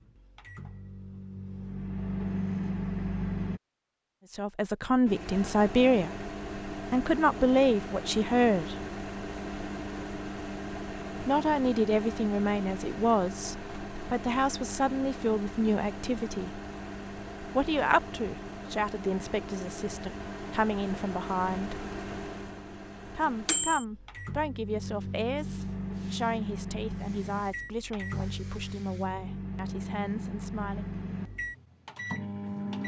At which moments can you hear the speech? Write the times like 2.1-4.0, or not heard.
4.3-6.2, 6.8-8.8, 11.2-16.6, 17.6-21.9, 23.1-30.9.